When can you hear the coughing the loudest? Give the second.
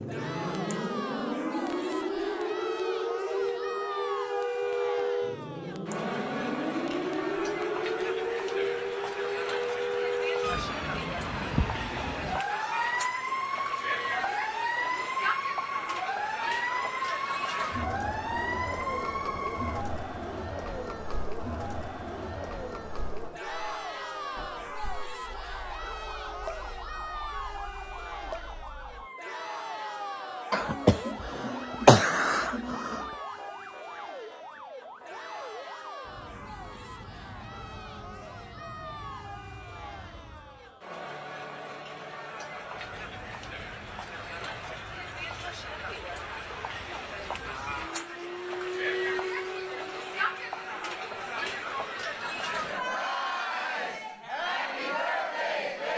32 s.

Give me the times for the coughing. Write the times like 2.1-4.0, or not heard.
30.5-33.0.